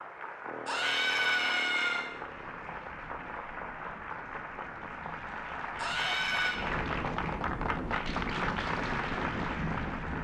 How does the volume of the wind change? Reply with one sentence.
The loudness of the wind goes up.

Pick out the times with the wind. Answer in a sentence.
You can hear the wind from 2.1 to 10.1 s.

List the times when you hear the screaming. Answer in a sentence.
The screaming can be heard from 0.7 to 2.0 s and from 5.8 to 6.6 s.